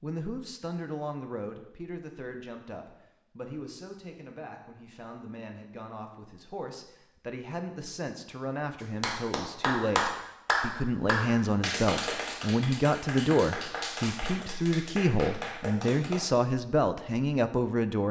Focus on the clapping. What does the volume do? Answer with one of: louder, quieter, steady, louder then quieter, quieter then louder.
quieter.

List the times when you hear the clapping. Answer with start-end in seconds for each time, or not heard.
8.8-16.2.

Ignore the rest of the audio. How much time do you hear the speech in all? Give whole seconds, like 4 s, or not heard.
18 s.